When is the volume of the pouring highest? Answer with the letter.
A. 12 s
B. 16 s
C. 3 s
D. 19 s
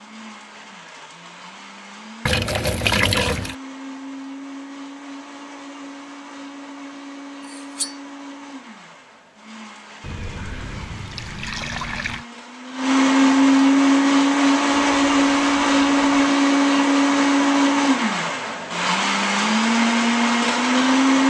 C.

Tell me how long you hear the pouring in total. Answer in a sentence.
The pouring can be heard for 5 seconds in total.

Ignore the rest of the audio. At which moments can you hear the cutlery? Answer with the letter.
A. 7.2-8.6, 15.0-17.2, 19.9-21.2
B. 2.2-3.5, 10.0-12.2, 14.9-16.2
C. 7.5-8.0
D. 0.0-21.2
C.